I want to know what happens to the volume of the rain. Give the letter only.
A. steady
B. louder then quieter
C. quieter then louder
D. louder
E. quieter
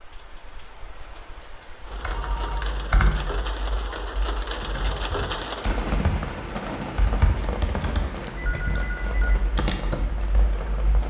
B.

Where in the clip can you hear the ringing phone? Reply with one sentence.
You can hear the ringing phone from 2.1 to 2.9 s and from 8.3 to 9.4 s.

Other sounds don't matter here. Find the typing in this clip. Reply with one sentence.
You can hear the typing from 1.9 to 11.0 s.